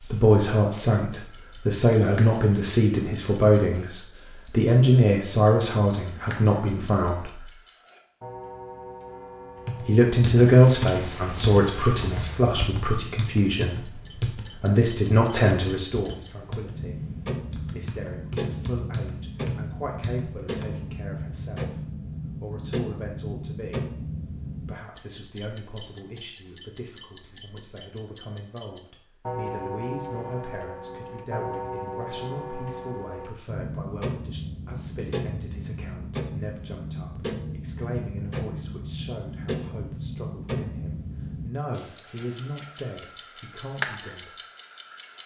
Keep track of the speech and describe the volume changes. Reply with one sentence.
The loudness of the speech goes down.